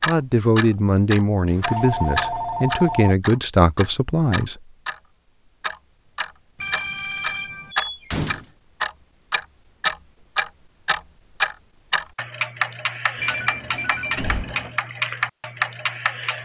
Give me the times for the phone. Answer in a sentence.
The phone can be heard from 1.6 to 3.1 s, from 6.5 to 7.8 s and from 13.2 to 14.8 s.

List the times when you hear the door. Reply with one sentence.
You can hear the door from 1.4 to 2.6 s, from 7.7 to 8.4 s and from 13.7 to 14.6 s.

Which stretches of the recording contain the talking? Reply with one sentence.
You can hear the talking from 0.1 to 4.7 s.